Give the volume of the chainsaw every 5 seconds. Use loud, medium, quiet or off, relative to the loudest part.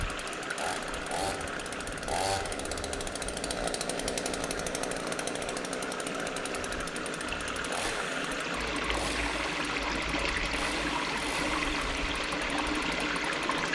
loud, loud, medium.